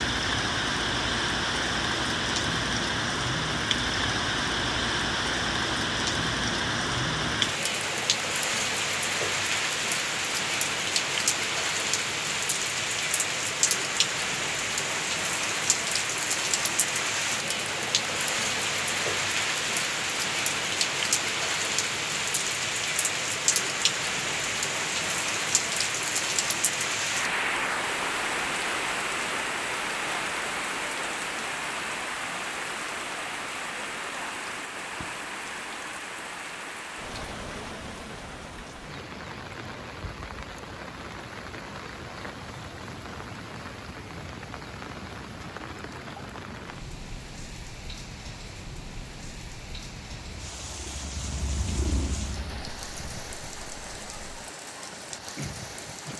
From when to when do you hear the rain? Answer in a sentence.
You can hear the rain from 0.0 to 56.1 s.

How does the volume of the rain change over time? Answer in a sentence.
The volume of the rain goes down.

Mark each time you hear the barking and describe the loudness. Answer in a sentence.
You can't hear the barking here.